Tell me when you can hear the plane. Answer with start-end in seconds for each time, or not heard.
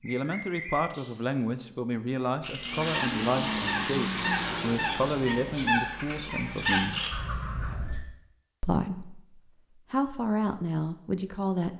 2.6-5.7.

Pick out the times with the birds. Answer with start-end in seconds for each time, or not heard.
0.0-8.0.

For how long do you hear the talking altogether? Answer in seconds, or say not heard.
10 s.